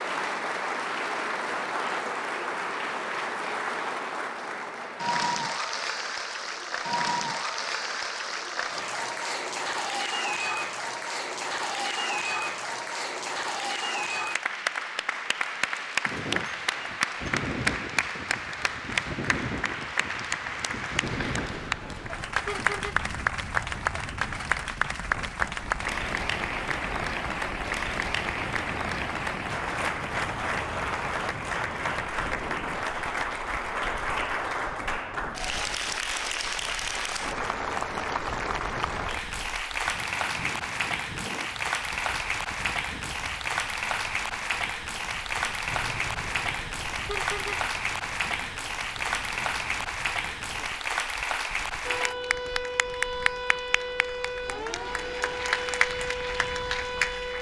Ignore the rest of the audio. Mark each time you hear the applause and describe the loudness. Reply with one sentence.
You can hear the applause from 0.0 to 57.3 s, at a steady volume.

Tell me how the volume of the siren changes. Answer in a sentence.
The loudness of the siren stays about the same.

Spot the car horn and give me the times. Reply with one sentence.
You can hear the car horn from 21.1 to 23.1 s and from 45.6 to 47.6 s.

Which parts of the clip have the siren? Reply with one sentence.
You can hear the siren from 51.8 to 57.3 s.